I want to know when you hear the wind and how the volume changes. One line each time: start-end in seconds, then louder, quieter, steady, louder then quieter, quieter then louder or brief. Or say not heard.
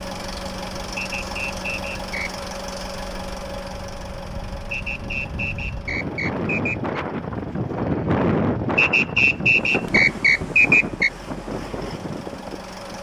0.2-12.9 louder then quieter.